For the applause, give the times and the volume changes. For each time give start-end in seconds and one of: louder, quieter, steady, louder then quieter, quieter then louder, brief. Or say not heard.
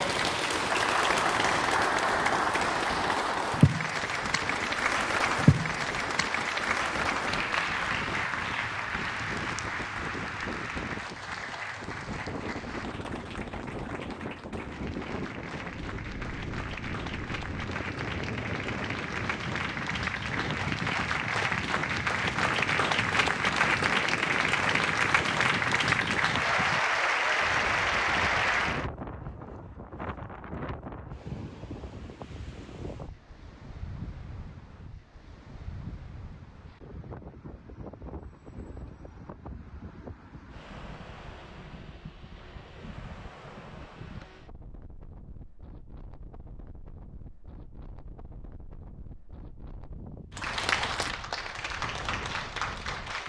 0.0-28.9 quieter then louder
50.4-53.2 brief.